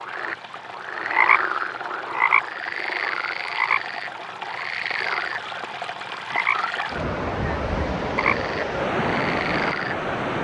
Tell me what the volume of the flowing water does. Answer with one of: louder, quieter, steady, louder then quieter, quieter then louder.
louder.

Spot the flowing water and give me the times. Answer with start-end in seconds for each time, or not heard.
0.0-10.3.